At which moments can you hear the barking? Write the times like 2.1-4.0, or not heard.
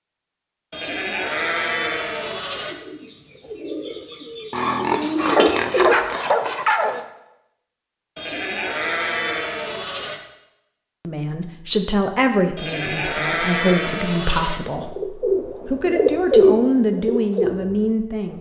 4.5-7.0.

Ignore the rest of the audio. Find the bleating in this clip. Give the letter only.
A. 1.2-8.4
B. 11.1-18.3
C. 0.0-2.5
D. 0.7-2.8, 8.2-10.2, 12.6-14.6
D.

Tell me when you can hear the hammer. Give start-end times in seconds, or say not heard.
not heard.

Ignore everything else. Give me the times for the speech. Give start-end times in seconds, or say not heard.
11.1-18.3.